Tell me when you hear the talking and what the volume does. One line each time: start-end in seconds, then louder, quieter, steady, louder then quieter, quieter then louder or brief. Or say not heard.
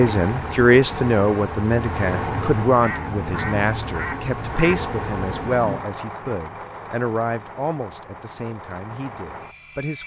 0.0-10.0 quieter.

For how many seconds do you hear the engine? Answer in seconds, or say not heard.
10 s.